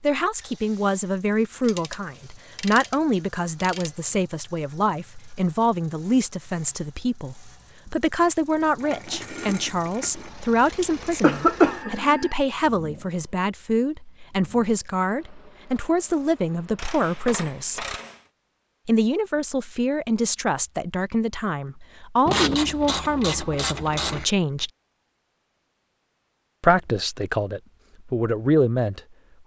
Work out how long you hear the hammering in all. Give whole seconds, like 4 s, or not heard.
not heard.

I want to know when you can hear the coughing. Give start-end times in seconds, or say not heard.
10.8-12.3.